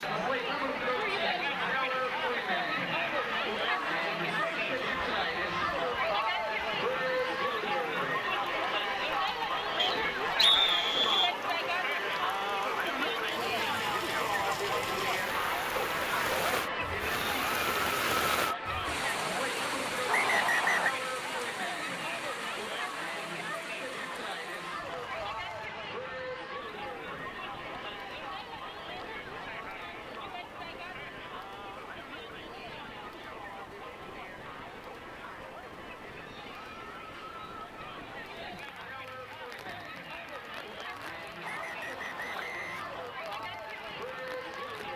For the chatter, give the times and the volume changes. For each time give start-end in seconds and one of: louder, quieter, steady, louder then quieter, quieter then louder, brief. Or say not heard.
0.0-44.9 quieter.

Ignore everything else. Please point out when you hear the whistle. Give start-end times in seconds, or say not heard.
9.8-11.3, 20.1-20.9, 41.4-43.0.